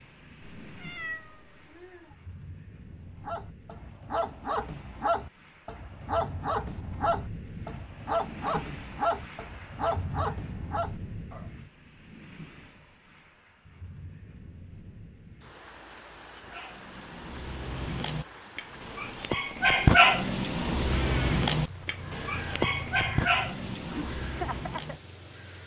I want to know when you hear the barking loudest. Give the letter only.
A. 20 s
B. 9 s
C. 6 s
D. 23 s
A.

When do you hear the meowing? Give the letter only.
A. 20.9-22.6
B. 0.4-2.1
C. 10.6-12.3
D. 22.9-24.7
B.